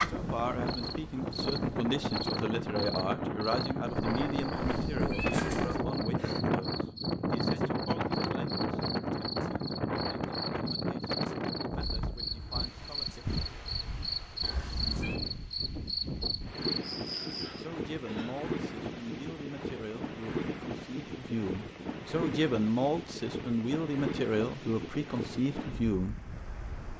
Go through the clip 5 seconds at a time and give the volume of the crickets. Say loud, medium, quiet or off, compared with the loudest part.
loud, medium, loud, loud, off, off.